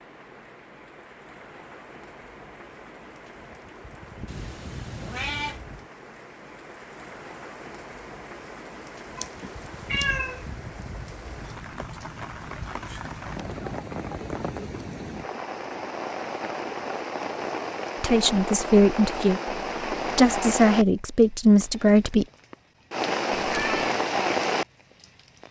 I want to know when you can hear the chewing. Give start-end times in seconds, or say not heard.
not heard.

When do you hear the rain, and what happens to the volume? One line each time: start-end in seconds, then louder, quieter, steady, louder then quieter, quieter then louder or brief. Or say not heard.
0.0-25.4 louder.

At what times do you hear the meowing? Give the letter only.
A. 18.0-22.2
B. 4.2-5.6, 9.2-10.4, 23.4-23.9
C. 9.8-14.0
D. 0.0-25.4
B.